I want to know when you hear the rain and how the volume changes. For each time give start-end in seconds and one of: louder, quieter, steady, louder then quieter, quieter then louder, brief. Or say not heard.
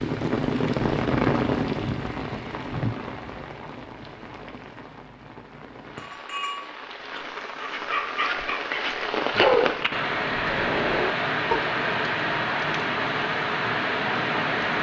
0.0-14.7 quieter then louder.